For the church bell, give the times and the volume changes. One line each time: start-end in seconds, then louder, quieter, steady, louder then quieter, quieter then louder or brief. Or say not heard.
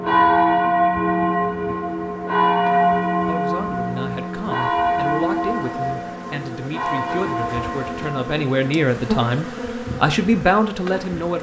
0.0-8.8 quieter.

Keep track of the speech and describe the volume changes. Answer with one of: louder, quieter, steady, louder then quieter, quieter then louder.
louder.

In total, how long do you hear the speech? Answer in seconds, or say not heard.
8 s.